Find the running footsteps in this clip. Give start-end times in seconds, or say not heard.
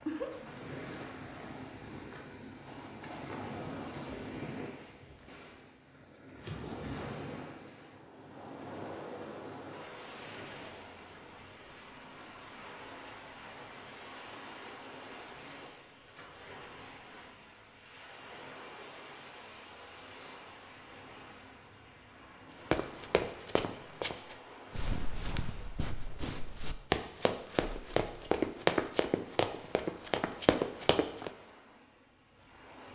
22.6-31.3.